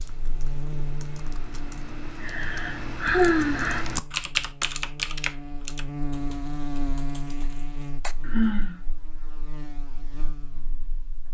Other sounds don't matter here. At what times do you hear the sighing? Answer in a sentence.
You can hear the sighing from 2.2 to 3.9 s and from 8.2 to 8.8 s.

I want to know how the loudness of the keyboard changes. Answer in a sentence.
The loudness of the keyboard goes up, then down.